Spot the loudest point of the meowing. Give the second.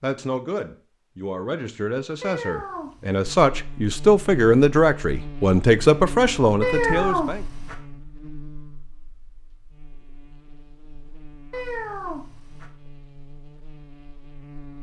7 s.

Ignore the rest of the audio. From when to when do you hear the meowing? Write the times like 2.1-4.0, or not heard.
2.2-3.2, 6.6-7.8, 11.5-12.7.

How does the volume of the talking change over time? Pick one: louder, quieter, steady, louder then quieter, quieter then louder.
louder.